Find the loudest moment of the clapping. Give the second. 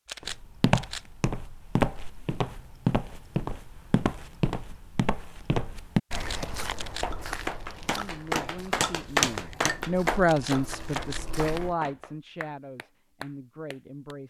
9 s.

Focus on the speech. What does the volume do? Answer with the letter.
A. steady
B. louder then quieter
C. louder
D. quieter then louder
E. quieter
B.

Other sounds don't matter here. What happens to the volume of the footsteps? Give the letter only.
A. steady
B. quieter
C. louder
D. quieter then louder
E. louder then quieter
B.